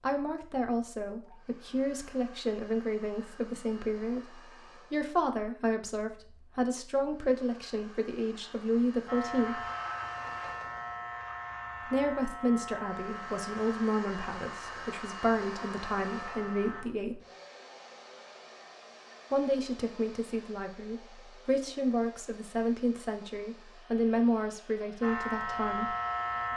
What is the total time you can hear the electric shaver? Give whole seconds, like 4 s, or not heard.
9 s.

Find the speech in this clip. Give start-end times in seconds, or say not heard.
0.0-9.6, 11.8-17.2, 19.3-25.9.